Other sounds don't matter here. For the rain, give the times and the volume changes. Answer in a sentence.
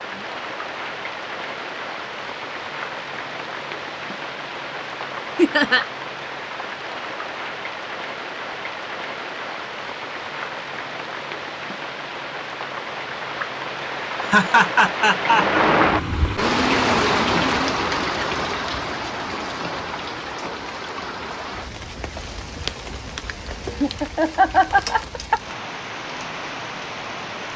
The rain can be heard from 0.0 to 27.5 s, getting louder then quieter.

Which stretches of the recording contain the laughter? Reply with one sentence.
You can hear the laughter from 5.3 to 5.8 s, from 14.2 to 15.6 s and from 23.8 to 25.4 s.